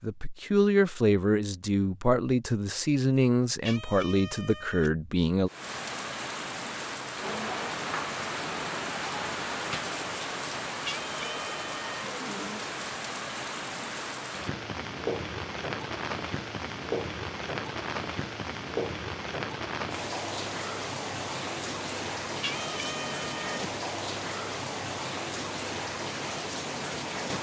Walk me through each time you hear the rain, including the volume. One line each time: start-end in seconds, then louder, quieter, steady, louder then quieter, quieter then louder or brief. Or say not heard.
5.5-27.3 steady.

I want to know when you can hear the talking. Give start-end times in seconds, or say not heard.
0.0-5.5.